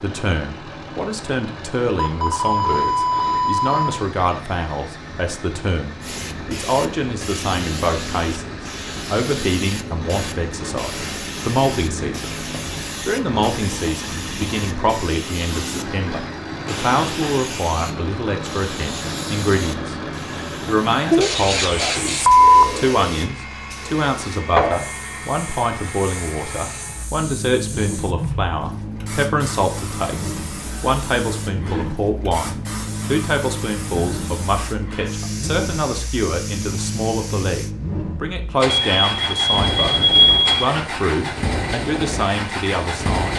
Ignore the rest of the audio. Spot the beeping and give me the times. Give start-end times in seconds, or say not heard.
1.9-4.0, 21.2-22.8, 38.6-40.6.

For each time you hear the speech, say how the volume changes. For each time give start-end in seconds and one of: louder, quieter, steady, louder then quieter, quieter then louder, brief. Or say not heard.
0.0-12.3 steady
13.0-19.9 steady
20.6-43.3 steady.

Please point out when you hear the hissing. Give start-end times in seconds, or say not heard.
6.0-37.8.